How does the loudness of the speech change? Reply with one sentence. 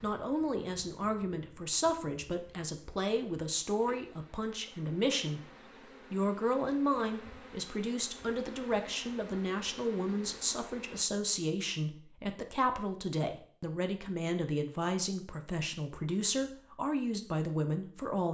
The volume of the speech stays about the same.